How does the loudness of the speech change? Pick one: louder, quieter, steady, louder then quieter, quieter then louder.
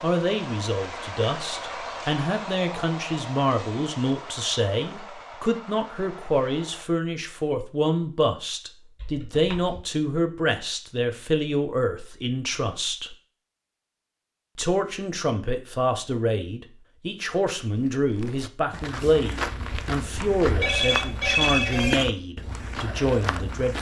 steady.